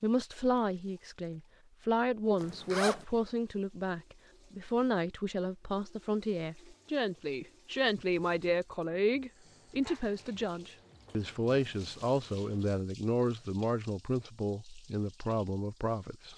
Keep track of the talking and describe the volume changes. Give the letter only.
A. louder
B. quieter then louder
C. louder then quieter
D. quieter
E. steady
E.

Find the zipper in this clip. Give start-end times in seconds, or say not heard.
2.4-3.0.